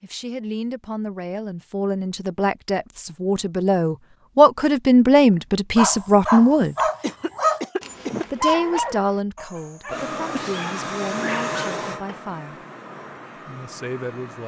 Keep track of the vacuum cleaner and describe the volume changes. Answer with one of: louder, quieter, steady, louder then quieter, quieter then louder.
quieter.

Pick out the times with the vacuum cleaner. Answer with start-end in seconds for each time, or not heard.
9.9-14.4.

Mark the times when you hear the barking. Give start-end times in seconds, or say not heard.
5.8-11.7.